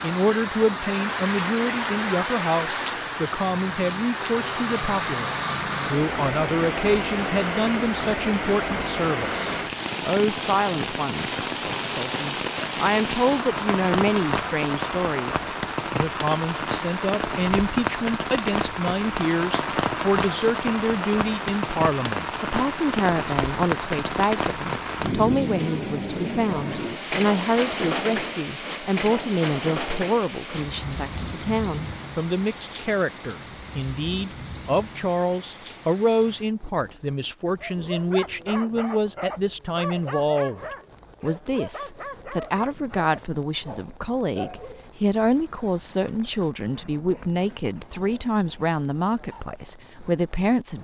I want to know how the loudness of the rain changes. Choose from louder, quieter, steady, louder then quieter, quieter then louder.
quieter.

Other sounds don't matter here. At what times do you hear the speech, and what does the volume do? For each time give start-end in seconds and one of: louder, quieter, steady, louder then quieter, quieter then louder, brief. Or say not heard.
0.0-50.7 steady.